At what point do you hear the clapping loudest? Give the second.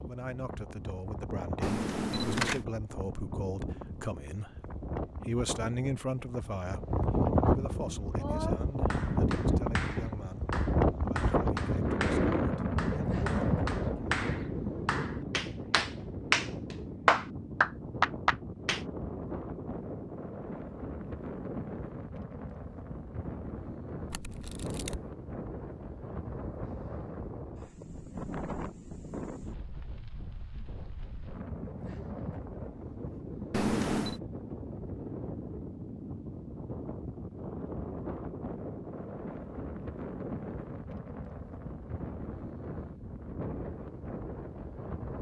17 s.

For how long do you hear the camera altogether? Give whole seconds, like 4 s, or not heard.
3 s.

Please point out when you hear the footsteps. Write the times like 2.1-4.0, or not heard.
not heard.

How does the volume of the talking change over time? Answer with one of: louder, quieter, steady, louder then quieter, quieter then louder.
louder then quieter.